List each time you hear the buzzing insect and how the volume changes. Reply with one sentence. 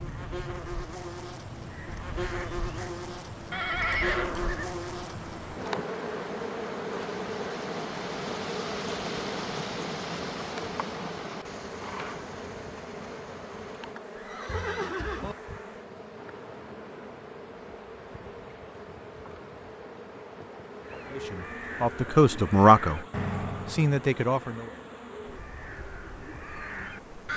The buzzing insect can be heard from 0.0 to 27.3 s, getting quieter.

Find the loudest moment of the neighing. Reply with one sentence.
The volume of the neighing peaks at 4 seconds.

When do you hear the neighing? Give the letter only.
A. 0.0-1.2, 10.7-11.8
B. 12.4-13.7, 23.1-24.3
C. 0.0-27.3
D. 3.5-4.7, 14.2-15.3
D.